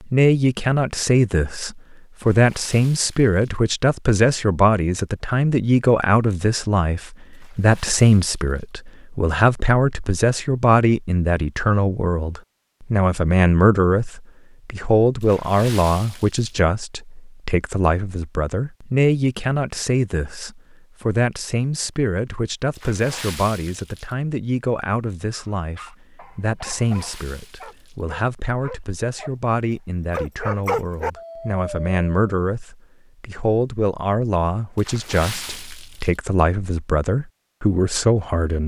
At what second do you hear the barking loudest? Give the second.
31 s.